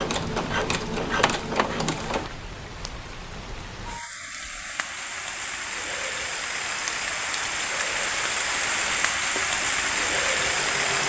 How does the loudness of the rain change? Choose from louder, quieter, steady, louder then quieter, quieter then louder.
louder.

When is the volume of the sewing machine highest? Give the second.
1 s.